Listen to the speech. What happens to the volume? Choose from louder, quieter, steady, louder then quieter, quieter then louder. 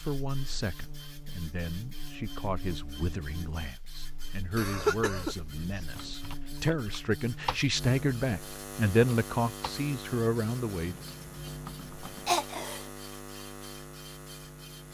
louder.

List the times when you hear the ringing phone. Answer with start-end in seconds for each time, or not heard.
not heard.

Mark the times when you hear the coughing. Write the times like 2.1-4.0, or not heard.
4.5-5.8, 12.2-12.8.